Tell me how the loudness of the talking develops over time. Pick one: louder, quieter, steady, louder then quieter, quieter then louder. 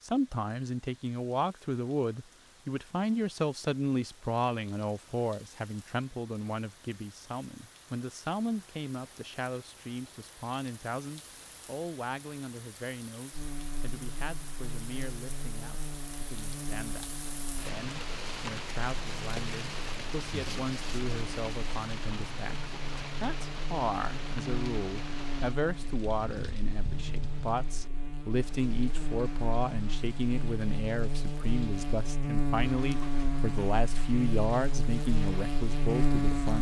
quieter then louder.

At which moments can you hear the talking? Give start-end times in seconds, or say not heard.
0.0-36.5.